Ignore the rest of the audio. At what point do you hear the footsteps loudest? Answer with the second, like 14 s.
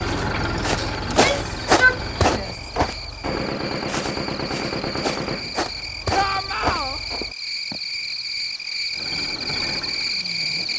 2 s.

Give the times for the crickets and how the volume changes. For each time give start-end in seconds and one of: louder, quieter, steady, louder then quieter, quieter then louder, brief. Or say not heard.
0.0-10.7 louder.